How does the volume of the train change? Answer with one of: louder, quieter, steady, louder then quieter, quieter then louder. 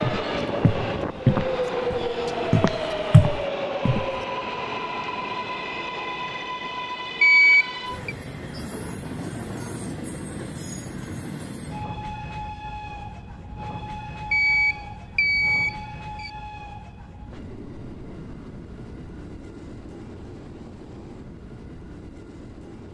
quieter.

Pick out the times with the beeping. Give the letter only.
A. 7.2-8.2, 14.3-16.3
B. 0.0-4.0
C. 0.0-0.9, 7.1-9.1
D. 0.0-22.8
A.